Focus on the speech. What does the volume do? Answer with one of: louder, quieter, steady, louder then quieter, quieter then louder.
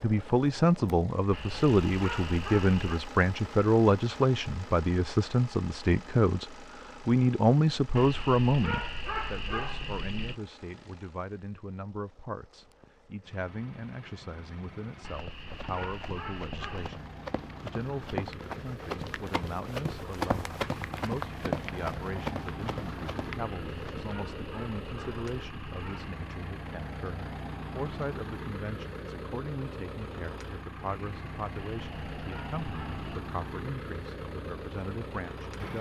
quieter.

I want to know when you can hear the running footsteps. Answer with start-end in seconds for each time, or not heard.
15.1-24.1.